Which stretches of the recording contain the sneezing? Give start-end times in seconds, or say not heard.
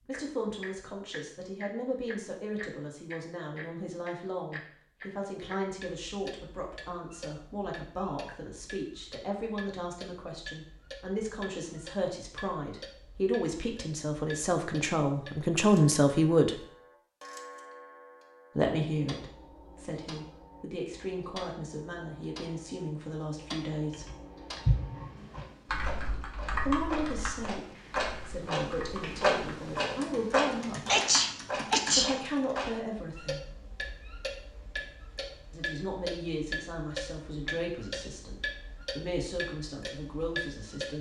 30.9-32.1.